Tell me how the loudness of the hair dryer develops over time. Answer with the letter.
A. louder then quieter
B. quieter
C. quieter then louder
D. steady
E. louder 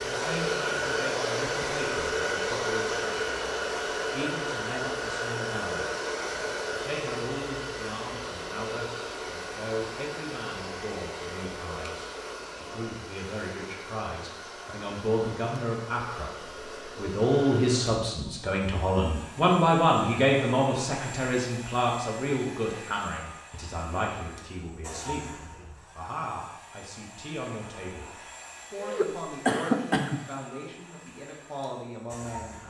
B.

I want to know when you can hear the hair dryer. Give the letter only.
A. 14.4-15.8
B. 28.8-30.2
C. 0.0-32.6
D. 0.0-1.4
C.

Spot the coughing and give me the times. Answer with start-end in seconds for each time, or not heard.
28.8-30.2.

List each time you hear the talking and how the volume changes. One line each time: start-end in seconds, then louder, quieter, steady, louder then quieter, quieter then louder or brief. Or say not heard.
0.0-6.0 steady
6.7-32.6 louder then quieter.